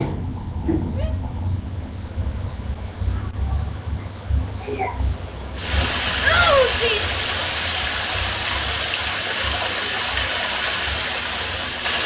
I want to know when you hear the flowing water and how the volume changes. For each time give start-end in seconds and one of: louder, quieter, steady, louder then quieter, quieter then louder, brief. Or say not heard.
5.5-12.0 steady.